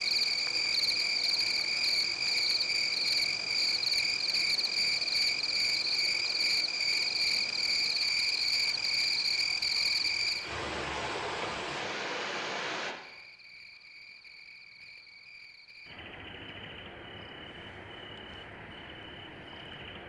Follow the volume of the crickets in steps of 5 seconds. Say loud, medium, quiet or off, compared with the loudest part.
loud, loud, medium, quiet.